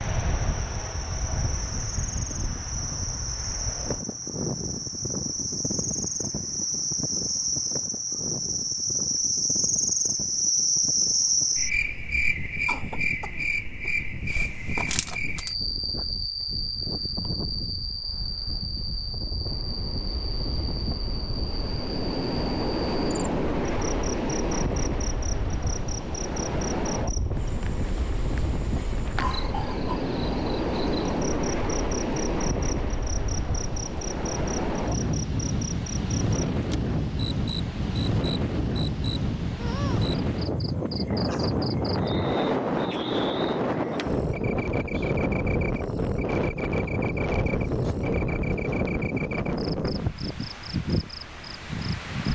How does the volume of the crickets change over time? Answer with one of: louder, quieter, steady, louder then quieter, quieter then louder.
quieter.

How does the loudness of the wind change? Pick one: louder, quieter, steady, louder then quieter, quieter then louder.
louder.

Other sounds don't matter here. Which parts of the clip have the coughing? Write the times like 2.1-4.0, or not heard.
12.7-13.9, 29.1-30.0.